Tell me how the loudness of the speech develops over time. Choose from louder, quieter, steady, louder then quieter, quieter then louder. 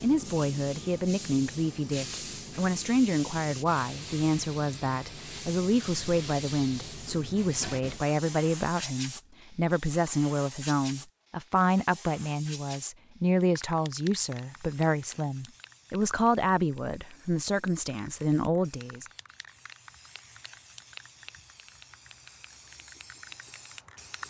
steady.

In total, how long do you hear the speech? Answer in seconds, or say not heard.
19 s.